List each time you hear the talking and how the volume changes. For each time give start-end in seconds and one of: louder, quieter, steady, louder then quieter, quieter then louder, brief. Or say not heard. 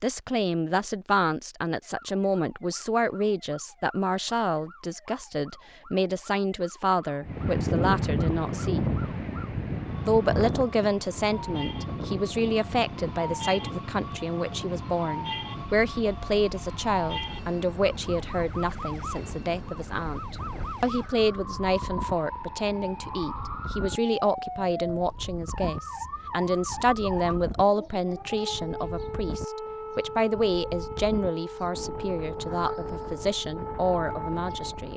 0.0-8.9 steady
10.1-34.9 steady.